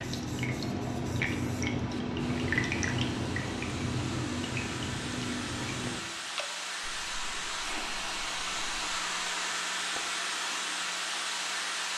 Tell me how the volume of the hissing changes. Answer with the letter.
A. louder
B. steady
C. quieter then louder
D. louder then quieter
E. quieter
A.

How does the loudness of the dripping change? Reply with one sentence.
The volume of the dripping goes down.